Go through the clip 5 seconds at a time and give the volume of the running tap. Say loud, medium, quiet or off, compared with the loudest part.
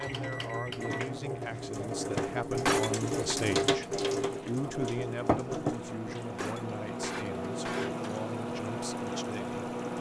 loud, medium.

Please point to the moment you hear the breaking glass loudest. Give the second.
3 s.